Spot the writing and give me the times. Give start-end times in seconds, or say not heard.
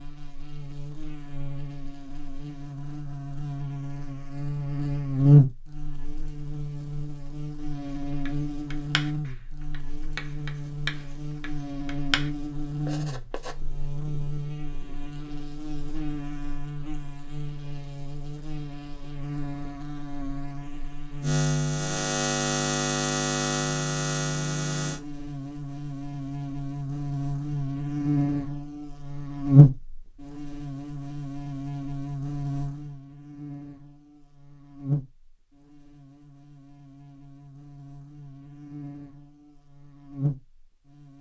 8.1-13.6.